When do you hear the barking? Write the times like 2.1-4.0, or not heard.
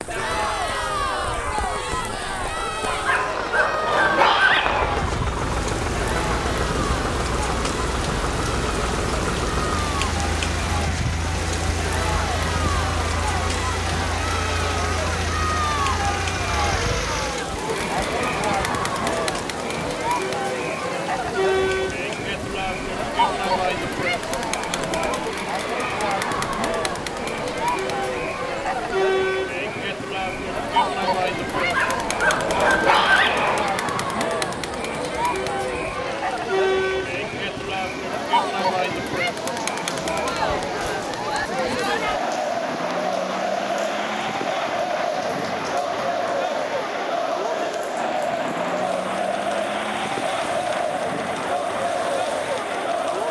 2.9-5.0, 31.5-33.7.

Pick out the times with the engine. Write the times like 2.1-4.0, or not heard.
4.5-17.5.